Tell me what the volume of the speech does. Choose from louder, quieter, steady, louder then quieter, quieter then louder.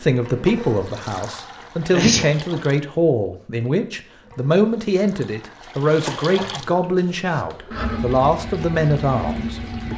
steady.